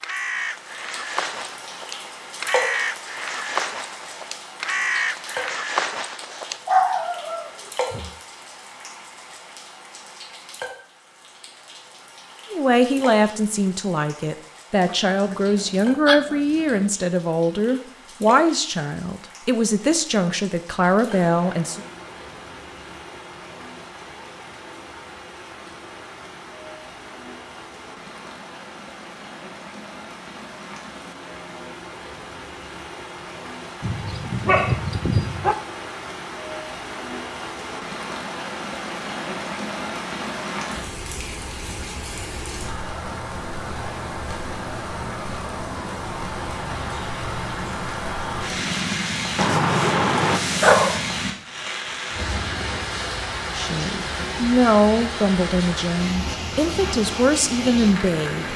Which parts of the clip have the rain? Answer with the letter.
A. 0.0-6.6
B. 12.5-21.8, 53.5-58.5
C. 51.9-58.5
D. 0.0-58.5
D.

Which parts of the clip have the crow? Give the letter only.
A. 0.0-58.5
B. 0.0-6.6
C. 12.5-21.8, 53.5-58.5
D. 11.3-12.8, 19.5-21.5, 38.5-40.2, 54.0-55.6
B.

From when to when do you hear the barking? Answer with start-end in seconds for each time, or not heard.
6.7-8.1, 14.8-16.9, 33.8-35.5, 49.4-51.0.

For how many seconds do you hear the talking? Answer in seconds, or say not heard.
14 s.